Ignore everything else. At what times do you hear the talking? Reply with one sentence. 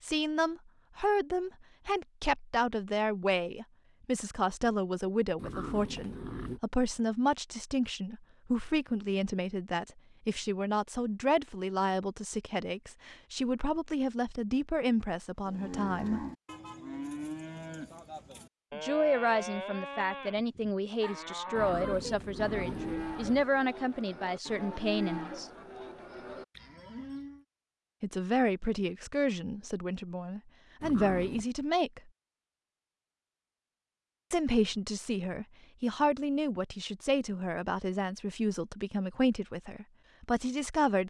You can hear the talking from 0.0 to 16.2 s, from 18.7 to 25.5 s, from 28.0 to 32.0 s and from 34.3 to 41.0 s.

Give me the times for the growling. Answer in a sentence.
You can hear the growling from 5.3 to 6.6 s, from 21.6 to 23.4 s and from 30.8 to 31.4 s.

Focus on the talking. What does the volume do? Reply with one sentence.
The volume of the talking stays about the same.